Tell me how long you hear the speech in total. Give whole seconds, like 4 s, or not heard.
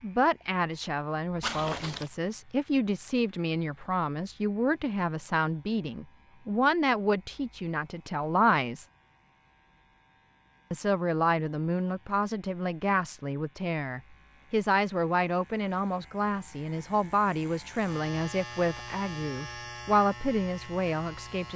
20 s.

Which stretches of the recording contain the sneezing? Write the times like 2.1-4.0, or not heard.
not heard.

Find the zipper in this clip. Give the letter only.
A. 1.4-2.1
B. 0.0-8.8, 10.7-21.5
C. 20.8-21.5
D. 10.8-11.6
A.